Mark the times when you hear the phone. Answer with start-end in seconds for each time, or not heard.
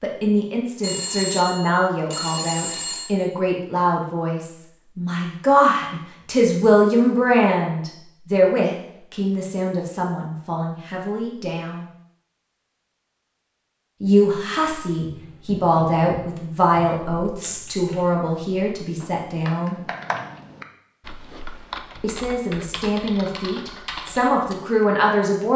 0.8-3.1.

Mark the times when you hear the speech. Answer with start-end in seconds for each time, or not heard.
0.0-11.8, 14.0-19.8, 22.0-25.5.